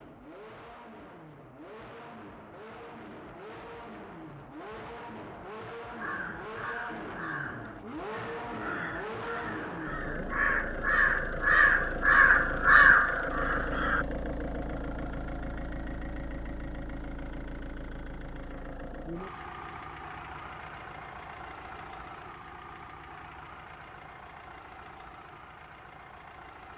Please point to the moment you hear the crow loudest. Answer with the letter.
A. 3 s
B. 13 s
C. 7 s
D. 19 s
B.